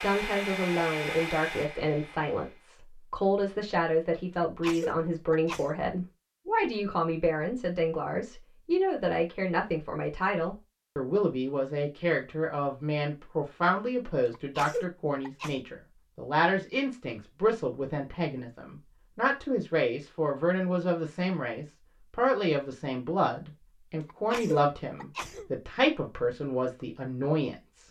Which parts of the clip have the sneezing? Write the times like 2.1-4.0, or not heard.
4.4-5.8, 14.3-15.6, 24.1-25.5.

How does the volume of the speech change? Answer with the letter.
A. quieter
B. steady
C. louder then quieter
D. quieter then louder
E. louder
B.